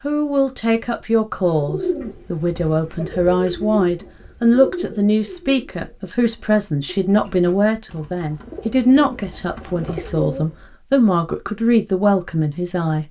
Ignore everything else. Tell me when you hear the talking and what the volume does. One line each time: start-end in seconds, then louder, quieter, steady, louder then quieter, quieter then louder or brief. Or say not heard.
0.0-13.0 steady.